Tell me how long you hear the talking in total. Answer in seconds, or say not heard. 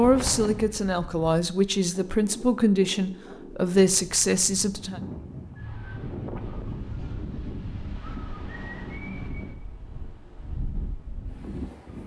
5 s.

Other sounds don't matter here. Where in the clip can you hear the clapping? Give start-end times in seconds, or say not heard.
not heard.